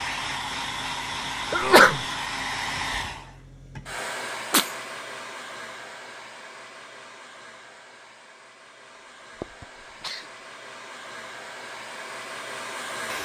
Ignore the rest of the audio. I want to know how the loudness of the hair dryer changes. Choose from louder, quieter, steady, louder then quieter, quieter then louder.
quieter then louder.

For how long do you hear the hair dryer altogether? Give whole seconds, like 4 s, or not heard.
13 s.